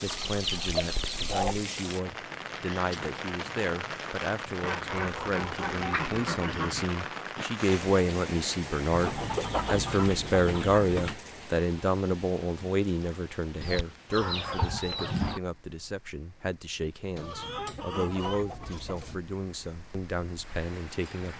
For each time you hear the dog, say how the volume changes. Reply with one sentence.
The dog can't be heard in this clip.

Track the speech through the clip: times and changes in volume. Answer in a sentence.
You can hear the speech from 0.0 to 21.3 s, getting louder then quieter.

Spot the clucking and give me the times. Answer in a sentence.
You can hear the clucking from 0.1 to 1.7 s, from 4.6 to 6.8 s, from 8.9 to 11.2 s, from 13.6 to 15.4 s and from 17.1 to 19.1 s.